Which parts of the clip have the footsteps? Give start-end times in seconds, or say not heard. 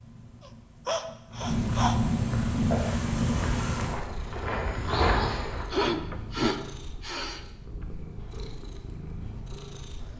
2.5-5.7.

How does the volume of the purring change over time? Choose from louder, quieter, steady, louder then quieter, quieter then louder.
quieter.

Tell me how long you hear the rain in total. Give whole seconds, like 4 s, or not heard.
not heard.